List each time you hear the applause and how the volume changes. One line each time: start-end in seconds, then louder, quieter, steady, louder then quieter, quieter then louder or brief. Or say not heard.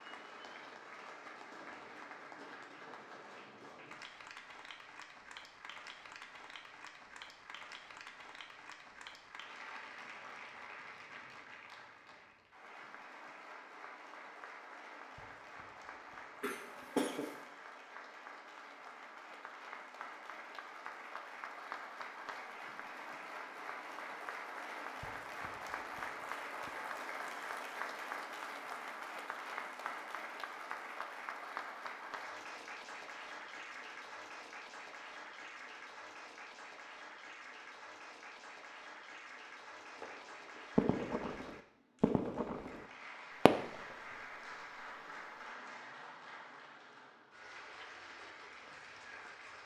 0.0-49.6 louder then quieter.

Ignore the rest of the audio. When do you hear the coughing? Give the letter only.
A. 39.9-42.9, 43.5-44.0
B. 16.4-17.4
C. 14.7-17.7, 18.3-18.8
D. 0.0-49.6
B.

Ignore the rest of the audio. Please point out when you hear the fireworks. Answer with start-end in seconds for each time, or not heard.
39.9-42.9, 43.5-44.0.